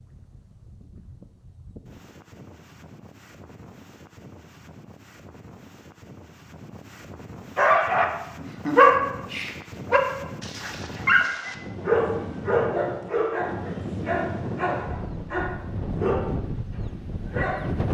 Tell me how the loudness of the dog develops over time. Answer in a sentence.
The loudness of the dog goes down.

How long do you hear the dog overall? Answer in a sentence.
You can hear the dog for 10 seconds altogether.